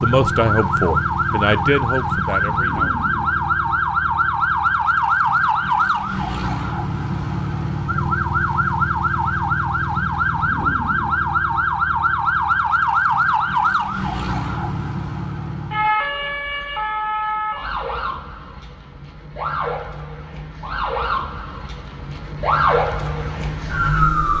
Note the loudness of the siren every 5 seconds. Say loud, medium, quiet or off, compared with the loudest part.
loud, loud, loud, medium, loud.